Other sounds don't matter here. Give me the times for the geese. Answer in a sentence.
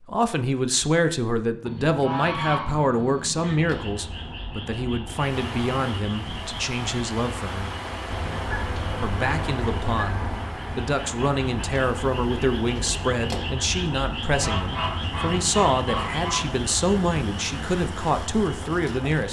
You can hear the geese from 1.6 to 3.5 s, from 8.1 to 10.5 s and from 14.3 to 16.4 s.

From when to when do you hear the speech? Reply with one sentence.
The speech can be heard from 0.0 to 7.8 s and from 9.0 to 19.2 s.